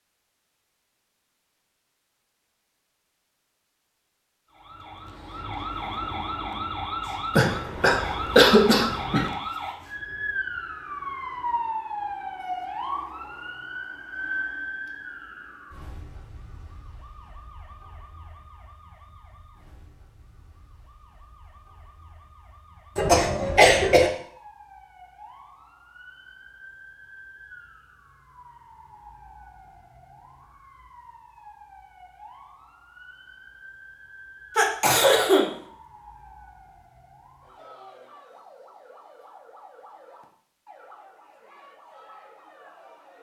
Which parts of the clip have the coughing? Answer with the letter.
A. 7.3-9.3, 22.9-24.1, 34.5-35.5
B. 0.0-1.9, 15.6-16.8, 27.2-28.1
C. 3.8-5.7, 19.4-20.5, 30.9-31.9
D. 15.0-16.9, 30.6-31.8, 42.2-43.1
A.